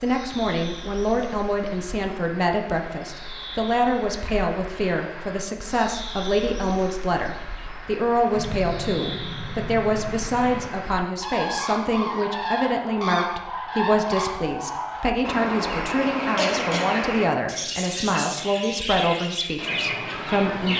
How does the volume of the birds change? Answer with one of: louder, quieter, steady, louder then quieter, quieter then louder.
louder.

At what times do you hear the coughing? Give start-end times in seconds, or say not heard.
16.4-17.1.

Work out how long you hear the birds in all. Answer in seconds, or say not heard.
21 s.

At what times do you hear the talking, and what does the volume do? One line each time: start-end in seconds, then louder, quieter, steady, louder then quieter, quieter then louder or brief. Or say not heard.
0.0-20.7 steady.